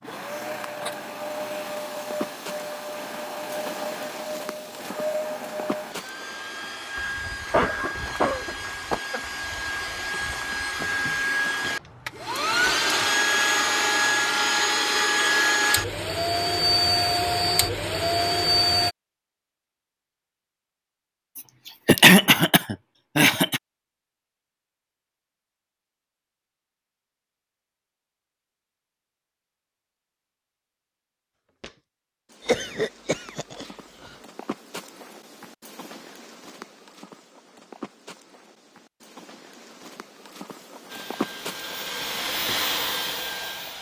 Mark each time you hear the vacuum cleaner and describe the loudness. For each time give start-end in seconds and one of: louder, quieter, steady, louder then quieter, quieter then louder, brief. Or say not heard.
0.0-18.9 louder
40.9-43.7 brief.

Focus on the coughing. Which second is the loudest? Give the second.
22 s.